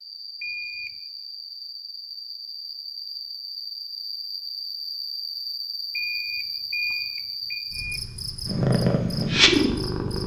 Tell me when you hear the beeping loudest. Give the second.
7 s.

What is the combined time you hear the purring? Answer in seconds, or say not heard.
2 s.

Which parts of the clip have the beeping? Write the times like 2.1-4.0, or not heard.
0.4-0.9, 5.9-8.0.